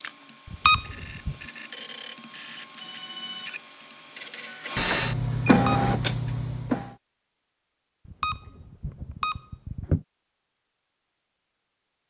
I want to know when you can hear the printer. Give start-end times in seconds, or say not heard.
0.0-7.0.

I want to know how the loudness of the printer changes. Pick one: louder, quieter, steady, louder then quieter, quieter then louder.
louder.